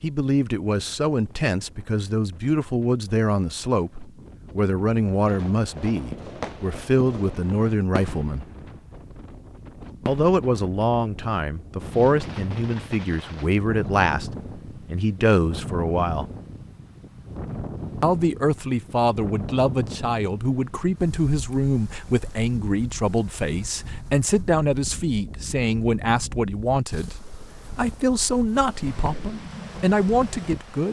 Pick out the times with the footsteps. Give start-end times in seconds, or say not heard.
not heard.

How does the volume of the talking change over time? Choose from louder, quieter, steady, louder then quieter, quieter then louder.
steady.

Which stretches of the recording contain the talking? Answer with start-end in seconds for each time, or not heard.
0.0-8.4, 10.1-16.2, 18.0-30.8.